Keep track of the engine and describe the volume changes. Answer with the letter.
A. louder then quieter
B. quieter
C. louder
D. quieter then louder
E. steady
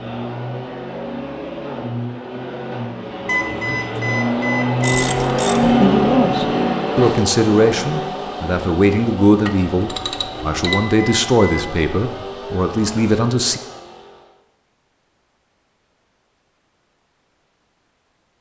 A.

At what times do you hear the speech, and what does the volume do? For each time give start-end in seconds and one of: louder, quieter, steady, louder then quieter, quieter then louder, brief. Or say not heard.
5.6-13.6 steady.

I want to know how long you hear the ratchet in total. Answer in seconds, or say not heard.
2 s.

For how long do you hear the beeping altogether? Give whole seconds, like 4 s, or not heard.
3 s.